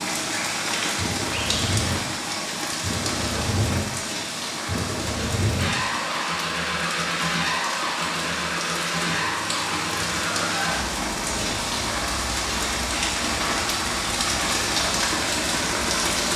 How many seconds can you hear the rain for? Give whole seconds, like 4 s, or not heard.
16 s.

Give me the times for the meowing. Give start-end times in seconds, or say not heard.
9.1-10.8.